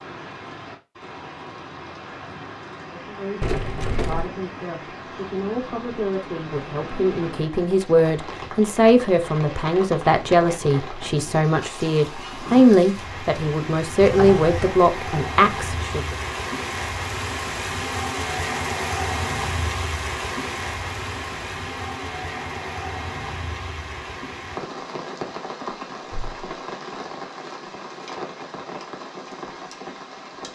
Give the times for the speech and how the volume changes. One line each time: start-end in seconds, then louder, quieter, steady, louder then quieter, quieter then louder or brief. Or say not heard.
2.8-16.1 louder.